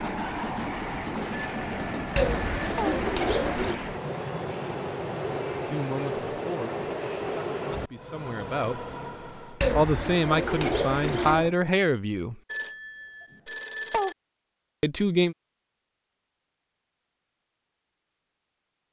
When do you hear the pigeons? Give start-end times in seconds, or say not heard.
2.1-3.8, 9.6-11.6.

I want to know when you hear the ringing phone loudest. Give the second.
14 s.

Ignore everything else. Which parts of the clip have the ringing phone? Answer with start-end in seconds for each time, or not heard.
1.3-3.0, 12.5-14.2.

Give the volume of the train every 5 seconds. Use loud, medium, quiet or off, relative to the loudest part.
loud, loud, off, off.